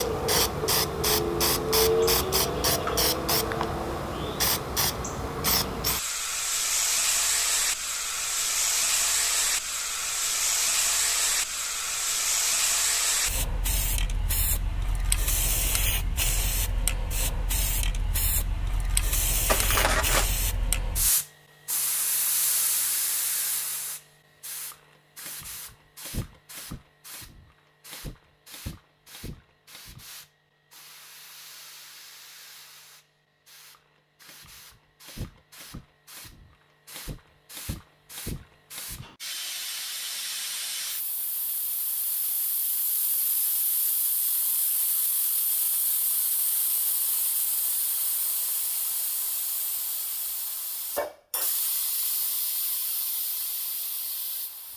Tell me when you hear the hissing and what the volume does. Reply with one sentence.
You can hear the hissing from 0.0 to 54.7 s, getting quieter.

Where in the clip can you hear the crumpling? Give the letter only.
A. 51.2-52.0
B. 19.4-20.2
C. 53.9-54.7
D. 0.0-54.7
B.